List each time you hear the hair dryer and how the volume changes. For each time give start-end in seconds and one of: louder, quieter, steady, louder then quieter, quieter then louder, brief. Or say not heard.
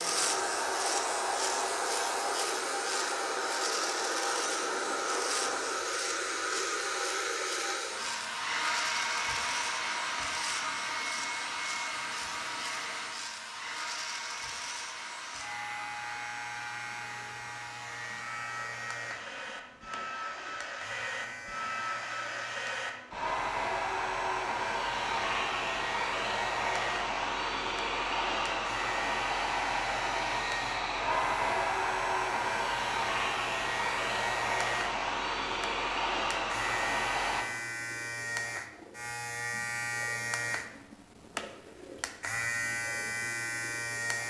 0.0-37.5 quieter then louder.